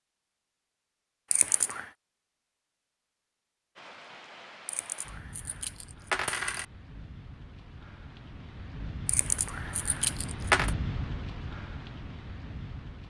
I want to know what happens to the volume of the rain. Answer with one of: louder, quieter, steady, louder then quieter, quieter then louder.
louder.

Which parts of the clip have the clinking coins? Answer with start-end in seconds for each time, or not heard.
1.3-1.9, 4.7-6.7, 9.1-10.8.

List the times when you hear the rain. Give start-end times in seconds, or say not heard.
3.8-13.0.